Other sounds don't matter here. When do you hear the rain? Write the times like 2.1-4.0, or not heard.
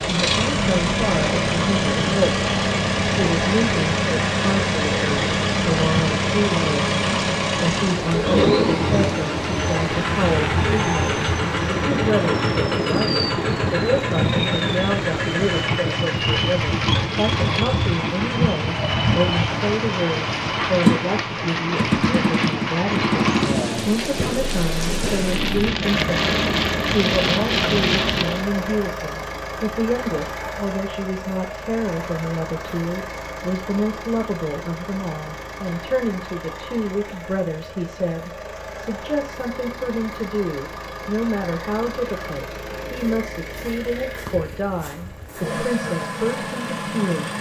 0.0-28.4.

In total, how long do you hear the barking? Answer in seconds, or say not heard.
not heard.